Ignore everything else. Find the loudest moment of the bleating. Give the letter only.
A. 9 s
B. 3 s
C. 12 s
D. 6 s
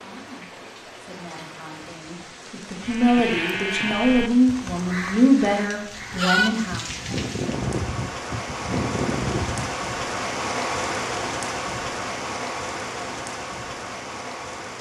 D.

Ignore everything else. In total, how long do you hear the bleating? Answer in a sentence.
The bleating can be heard for 7 seconds in total.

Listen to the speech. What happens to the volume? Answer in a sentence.
The loudness of the speech goes up.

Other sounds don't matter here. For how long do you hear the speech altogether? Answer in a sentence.
The speech can be heard for 7 seconds in total.